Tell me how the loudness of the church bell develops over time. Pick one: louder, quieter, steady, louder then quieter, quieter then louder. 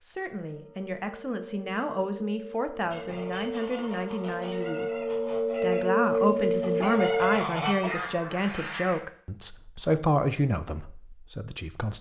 louder.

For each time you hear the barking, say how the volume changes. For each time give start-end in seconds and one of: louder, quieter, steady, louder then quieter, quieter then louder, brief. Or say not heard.
not heard.